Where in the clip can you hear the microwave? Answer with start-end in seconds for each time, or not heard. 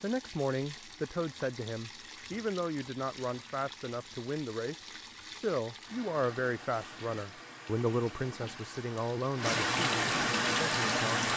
not heard.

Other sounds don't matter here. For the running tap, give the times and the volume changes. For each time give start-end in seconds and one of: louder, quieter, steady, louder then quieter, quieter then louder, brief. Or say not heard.
0.0-11.3 louder.